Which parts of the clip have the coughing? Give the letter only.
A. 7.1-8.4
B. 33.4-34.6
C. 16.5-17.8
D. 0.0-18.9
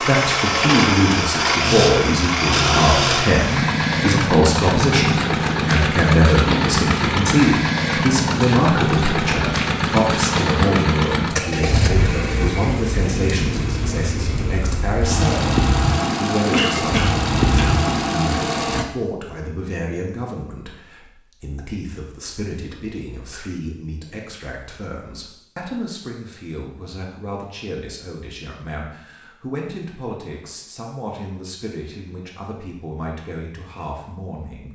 C.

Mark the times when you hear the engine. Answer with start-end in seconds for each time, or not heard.
0.0-18.9.